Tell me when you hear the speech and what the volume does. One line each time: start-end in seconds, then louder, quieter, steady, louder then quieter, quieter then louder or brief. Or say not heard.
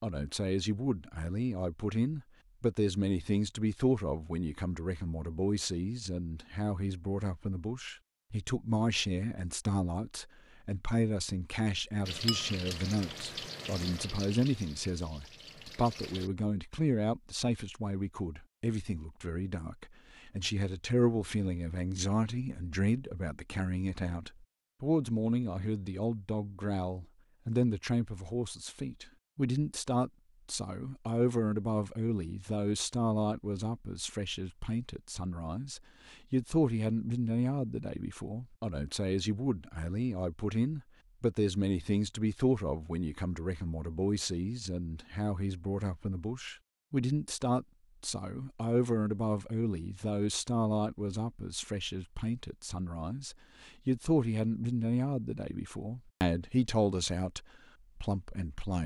0.0-58.8 steady.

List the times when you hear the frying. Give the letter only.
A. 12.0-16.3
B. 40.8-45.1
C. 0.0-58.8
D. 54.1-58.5
A.